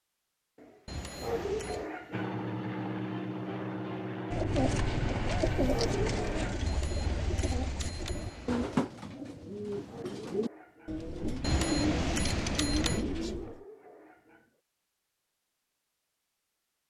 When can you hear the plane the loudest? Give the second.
3 s.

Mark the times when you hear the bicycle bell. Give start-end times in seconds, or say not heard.
0.8-1.9, 6.7-8.7, 11.4-13.1.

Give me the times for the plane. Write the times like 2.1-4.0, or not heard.
2.1-6.6.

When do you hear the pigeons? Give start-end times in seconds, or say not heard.
4.3-13.6.